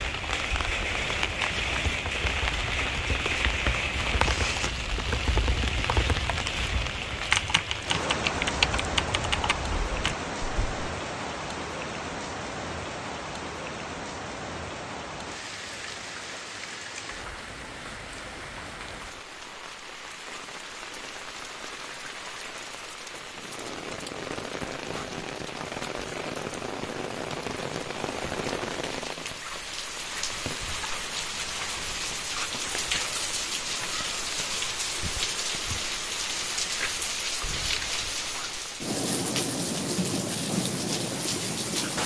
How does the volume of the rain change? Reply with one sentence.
The loudness of the rain goes down, then up.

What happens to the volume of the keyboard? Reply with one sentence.
The loudness of the keyboard goes up.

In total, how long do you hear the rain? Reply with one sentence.
You can hear the rain for 42 seconds altogether.